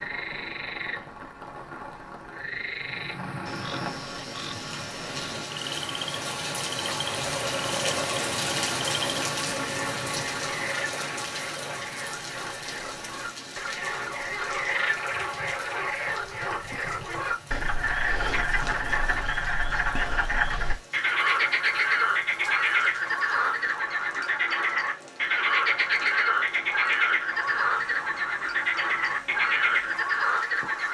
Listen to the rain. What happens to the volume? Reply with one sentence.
The loudness of the rain goes up, then down.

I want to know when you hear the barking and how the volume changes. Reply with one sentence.
You can't hear the barking here.